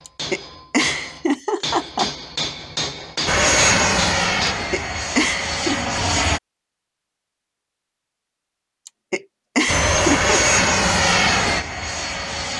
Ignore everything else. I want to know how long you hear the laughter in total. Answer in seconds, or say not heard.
5 s.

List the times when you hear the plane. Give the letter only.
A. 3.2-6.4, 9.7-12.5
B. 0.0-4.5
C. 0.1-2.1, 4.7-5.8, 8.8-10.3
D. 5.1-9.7
A.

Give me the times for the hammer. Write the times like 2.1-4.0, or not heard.
0.0-4.5.